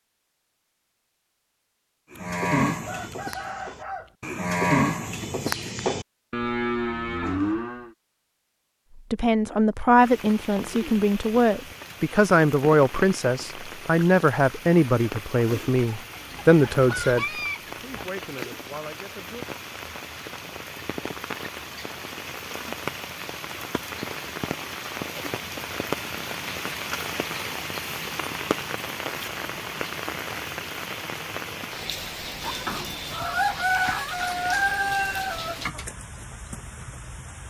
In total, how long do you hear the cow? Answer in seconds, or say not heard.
6 s.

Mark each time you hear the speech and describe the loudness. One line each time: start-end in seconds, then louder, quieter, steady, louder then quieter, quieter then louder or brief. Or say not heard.
9.1-19.4 quieter.